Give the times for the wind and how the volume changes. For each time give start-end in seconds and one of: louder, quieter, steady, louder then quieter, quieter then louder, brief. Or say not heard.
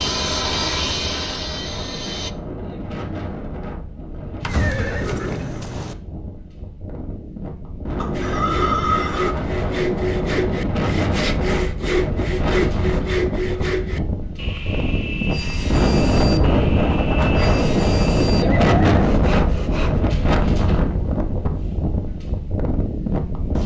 0.0-23.6 louder.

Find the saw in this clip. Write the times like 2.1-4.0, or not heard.
0.0-2.3, 8.1-20.0.